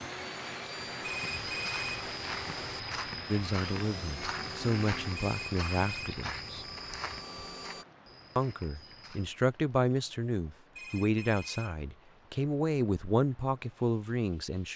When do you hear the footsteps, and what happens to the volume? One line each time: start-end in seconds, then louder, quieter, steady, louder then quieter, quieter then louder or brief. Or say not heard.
1.2-9.3 quieter.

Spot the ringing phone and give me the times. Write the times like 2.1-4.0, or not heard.
1.0-2.0, 5.2-6.2, 10.8-11.8.